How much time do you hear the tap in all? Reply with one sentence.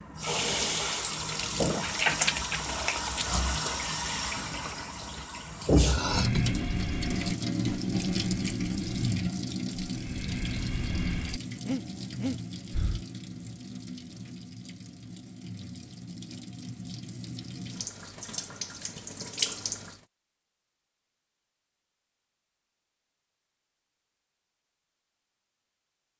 The tap can be heard for 20 seconds in total.